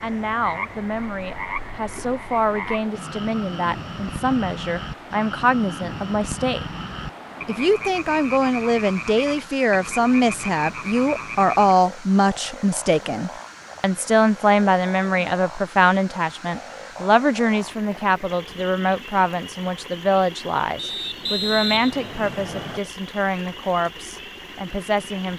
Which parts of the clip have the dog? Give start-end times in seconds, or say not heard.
not heard.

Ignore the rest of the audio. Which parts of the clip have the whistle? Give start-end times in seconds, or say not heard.
20.8-22.8.